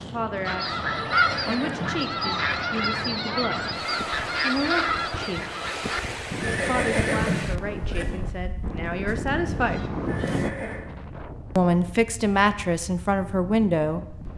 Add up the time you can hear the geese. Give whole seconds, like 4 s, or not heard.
10 s.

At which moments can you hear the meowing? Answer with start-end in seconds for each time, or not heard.
not heard.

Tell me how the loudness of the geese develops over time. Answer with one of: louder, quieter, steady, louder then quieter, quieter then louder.
quieter.